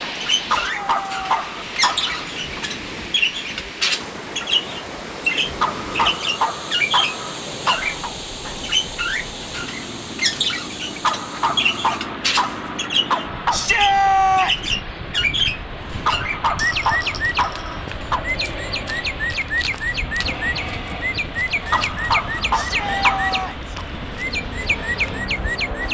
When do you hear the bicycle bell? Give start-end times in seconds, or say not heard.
not heard.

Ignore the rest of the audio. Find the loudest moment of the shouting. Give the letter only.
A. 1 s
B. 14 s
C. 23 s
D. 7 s
B.